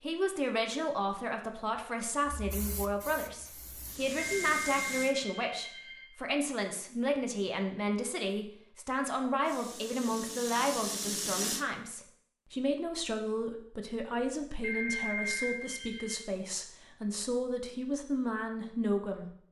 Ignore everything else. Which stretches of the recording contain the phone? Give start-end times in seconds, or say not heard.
4.2-6.0, 14.6-16.2.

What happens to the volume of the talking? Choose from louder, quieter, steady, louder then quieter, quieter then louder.
steady.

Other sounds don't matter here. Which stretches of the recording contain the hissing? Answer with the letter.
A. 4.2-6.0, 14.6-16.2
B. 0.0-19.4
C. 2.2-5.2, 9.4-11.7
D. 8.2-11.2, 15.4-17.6
C.